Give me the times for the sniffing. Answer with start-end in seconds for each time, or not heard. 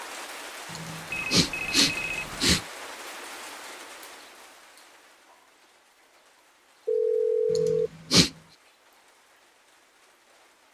0.7-2.6, 7.5-8.3.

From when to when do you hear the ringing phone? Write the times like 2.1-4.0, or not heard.
1.1-2.5, 6.8-7.9.